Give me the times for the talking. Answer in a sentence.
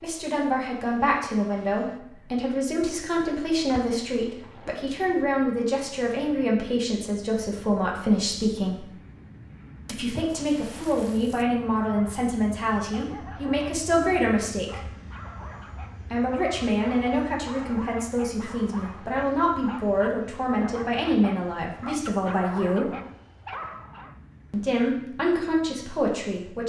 You can hear the talking from 0.0 to 8.9 s, from 9.9 to 14.8 s, from 16.1 to 22.9 s and from 24.5 to 26.6 s.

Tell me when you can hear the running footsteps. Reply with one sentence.
You can't hear the running footsteps here.